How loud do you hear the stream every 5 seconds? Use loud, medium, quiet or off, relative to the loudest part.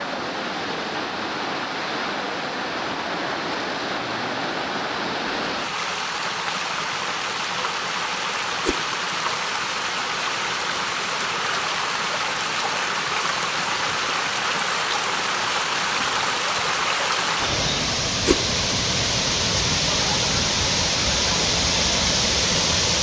medium, medium, loud, loud, loud.